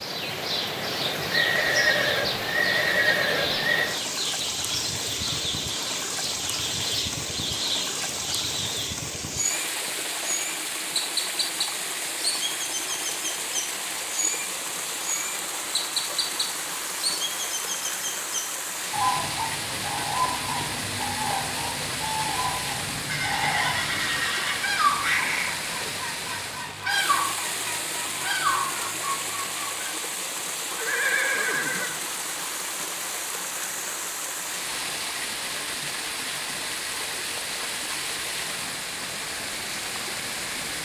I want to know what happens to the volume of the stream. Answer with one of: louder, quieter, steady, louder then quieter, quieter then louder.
steady.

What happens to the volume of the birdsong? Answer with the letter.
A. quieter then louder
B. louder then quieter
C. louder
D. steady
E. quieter
D.